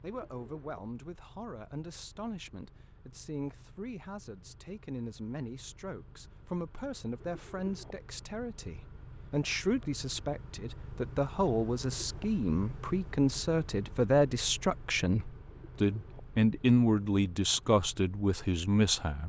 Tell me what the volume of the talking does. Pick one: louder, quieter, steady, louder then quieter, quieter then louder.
louder.